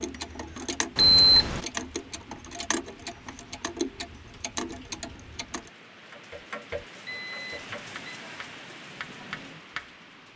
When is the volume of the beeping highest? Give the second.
1 s.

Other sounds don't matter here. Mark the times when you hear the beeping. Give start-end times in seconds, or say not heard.
0.9-1.6, 7.0-8.2.